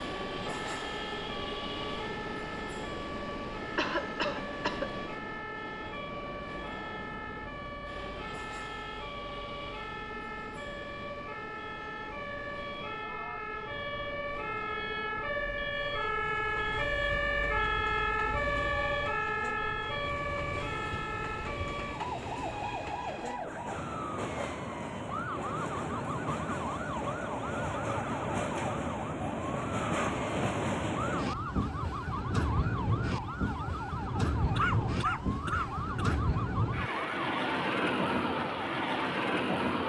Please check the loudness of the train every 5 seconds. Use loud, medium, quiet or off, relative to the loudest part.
medium, quiet, quiet, quiet, medium, loud, loud, loud.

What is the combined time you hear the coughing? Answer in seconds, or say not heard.
3 s.